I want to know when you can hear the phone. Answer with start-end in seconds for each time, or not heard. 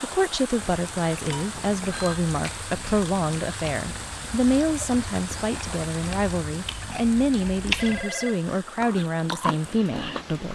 1.5-2.2, 7.8-8.5.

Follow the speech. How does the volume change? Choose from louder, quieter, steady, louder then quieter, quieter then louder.
steady.